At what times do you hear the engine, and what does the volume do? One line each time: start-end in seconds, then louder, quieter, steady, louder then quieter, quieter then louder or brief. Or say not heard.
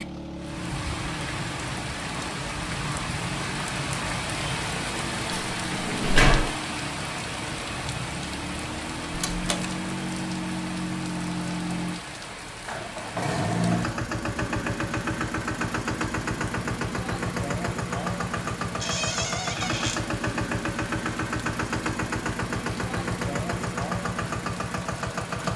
0.0-25.5 louder.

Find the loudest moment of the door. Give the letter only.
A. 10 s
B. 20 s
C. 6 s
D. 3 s
C.